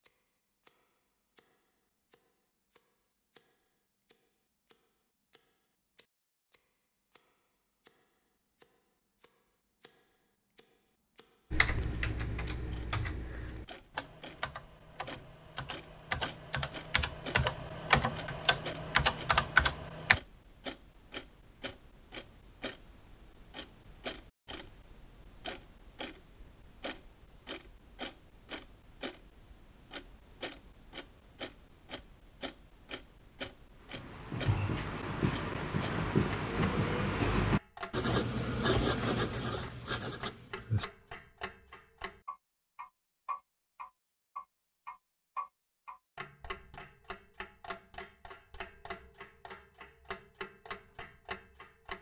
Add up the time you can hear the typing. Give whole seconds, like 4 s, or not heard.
9 s.